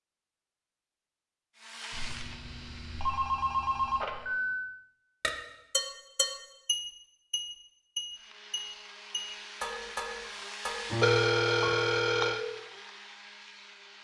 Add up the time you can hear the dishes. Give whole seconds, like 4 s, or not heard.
6 s.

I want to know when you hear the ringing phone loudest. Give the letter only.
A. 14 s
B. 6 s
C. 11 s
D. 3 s
C.